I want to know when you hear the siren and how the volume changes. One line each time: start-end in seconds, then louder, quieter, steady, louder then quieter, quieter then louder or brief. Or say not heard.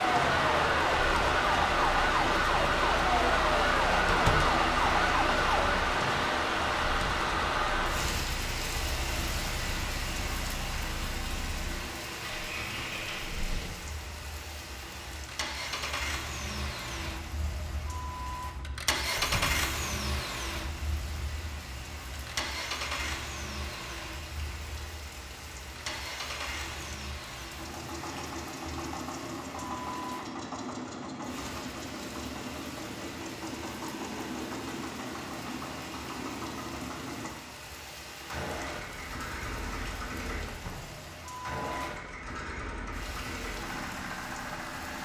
0.0-5.8 steady.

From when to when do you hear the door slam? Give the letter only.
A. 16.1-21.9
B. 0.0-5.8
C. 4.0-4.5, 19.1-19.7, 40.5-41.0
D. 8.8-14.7
C.